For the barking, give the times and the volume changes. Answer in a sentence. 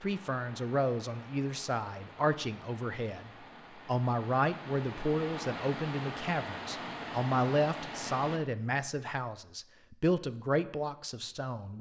The barking can't be heard in this clip.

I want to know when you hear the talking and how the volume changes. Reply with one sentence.
The talking can be heard from 0.0 to 11.7 s, at a steady volume.